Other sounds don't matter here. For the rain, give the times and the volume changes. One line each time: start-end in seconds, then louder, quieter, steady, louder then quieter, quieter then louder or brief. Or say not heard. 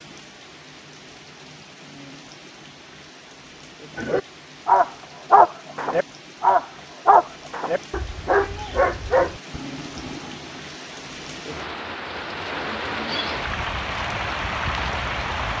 0.0-15.5 louder.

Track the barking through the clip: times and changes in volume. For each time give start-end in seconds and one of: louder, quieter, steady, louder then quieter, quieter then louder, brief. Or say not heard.
4.0-10.6 quieter.